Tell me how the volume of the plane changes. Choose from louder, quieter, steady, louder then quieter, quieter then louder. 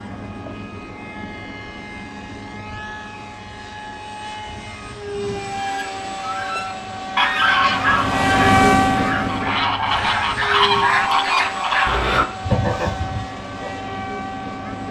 louder then quieter.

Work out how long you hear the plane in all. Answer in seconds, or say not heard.
15 s.